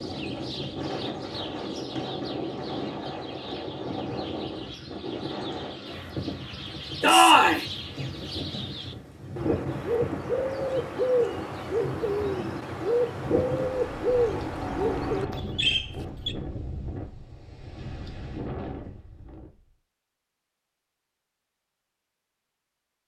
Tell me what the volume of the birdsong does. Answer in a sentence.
The volume of the birdsong goes up.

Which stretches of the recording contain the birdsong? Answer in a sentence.
The birdsong can be heard from 0.0 to 16.4 s.